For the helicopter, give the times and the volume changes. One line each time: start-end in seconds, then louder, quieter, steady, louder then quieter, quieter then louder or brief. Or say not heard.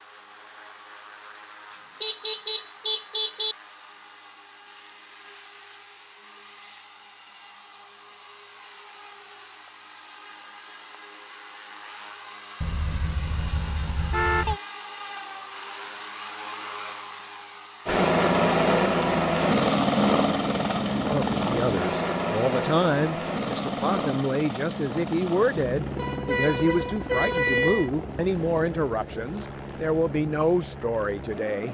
0.0-31.7 louder then quieter.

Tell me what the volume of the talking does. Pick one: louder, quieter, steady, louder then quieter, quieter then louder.
steady.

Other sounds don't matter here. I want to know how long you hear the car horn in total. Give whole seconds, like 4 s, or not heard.
6 s.